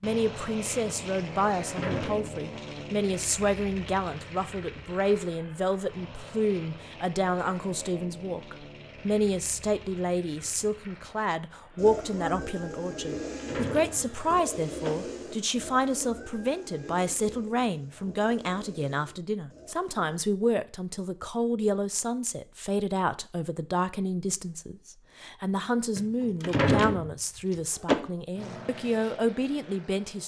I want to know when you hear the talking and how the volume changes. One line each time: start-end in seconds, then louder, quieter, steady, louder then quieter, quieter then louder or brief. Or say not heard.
0.0-30.2 steady.